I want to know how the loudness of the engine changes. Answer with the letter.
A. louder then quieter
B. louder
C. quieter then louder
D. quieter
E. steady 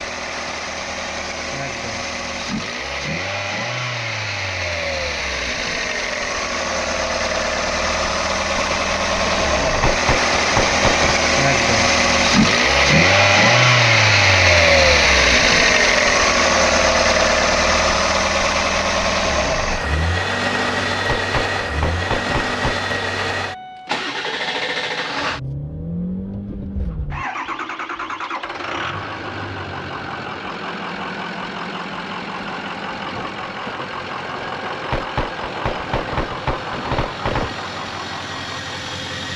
A.